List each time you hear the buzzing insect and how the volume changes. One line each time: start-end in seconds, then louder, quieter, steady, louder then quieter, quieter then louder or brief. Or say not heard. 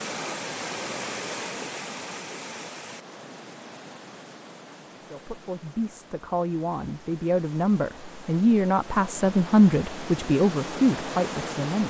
not heard.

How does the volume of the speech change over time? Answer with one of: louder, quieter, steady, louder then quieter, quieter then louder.
louder.